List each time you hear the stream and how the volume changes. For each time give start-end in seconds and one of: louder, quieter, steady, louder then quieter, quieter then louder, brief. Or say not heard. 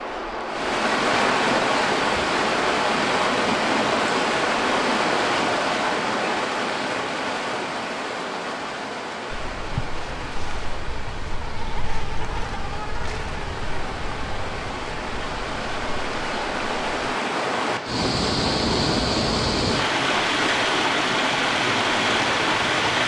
0.0-23.0 quieter then louder.